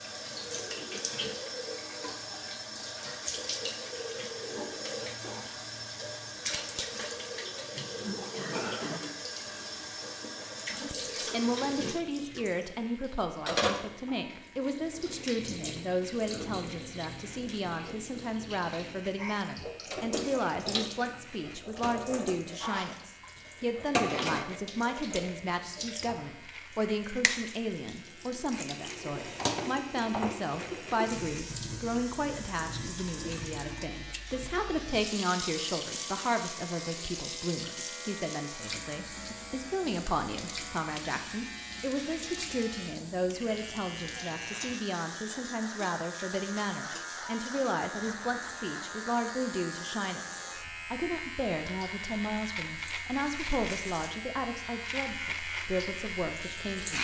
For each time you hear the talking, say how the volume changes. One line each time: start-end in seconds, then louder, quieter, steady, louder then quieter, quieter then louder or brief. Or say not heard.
11.3-56.9 steady.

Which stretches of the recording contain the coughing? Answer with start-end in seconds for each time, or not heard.
8.3-9.0.